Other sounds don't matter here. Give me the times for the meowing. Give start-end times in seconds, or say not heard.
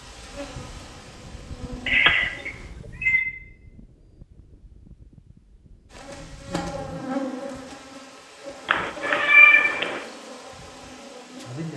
1.9-3.2, 8.7-10.0.